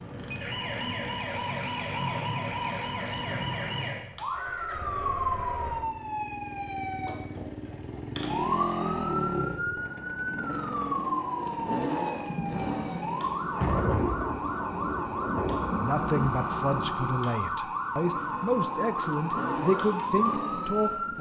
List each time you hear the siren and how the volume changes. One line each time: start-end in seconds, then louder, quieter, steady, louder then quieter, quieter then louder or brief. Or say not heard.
0.0-21.1 steady.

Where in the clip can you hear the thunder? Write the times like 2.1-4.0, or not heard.
12.2-16.9.